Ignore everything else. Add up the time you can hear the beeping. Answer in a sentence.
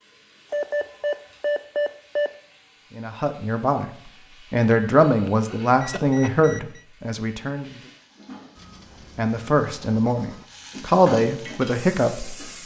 You can hear the beeping for 6 seconds altogether.